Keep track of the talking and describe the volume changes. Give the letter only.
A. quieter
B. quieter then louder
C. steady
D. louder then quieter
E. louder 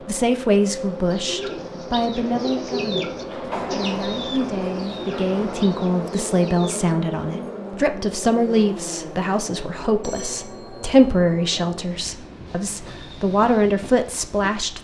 C.